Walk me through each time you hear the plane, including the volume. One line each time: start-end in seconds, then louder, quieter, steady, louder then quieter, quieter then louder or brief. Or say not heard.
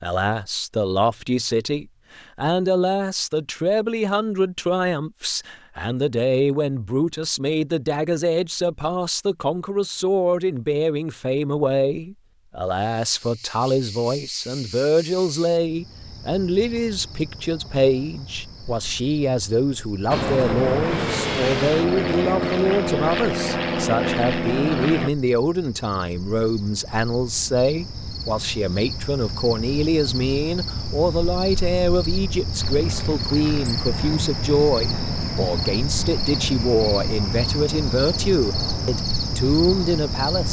20.1-25.1 steady
32.6-40.4 steady.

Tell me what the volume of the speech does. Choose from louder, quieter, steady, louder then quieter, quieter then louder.
steady.